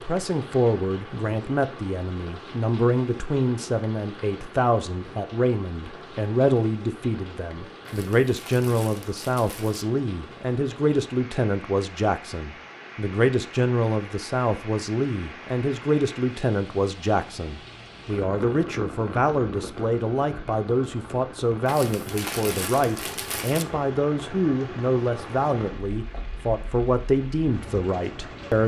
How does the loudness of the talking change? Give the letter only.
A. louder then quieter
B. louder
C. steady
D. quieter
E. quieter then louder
C.